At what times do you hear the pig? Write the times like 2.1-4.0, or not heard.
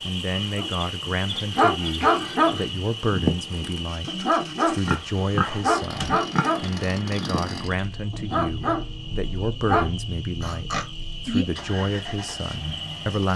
0.2-2.7, 4.8-6.8, 10.4-11.4.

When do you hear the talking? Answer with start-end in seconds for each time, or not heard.
0.0-13.3.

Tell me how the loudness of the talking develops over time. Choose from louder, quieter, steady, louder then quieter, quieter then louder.
steady.